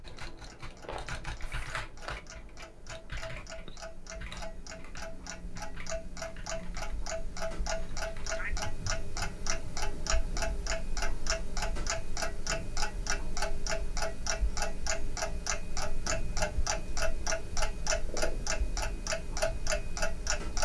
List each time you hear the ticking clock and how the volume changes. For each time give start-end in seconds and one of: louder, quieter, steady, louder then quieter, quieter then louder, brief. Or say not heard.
0.0-20.5 louder.